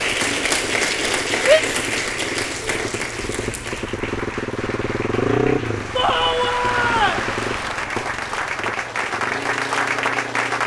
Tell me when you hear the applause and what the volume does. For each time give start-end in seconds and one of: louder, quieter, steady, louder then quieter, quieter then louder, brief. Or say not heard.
0.0-10.6 quieter then louder.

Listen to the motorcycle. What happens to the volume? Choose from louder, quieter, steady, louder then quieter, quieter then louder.
louder then quieter.